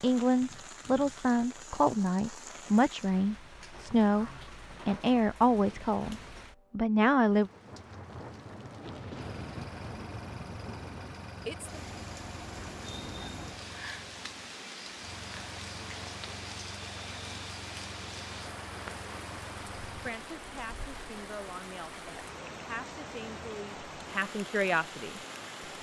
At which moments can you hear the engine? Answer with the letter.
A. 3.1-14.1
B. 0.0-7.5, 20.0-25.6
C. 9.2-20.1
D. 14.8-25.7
C.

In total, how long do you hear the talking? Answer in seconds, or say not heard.
13 s.